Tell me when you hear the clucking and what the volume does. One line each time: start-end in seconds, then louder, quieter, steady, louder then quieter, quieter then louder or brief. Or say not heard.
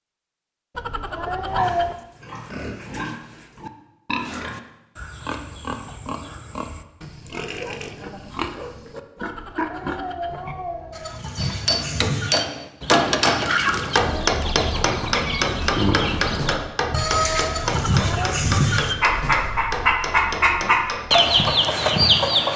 10.9-22.5 louder.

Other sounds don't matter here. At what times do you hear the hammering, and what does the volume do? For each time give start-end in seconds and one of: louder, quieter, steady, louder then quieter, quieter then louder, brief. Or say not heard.
11.3-21.5 quieter.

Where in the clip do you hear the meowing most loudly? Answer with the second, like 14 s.
2 s.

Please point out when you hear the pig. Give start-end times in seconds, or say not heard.
1.4-10.6.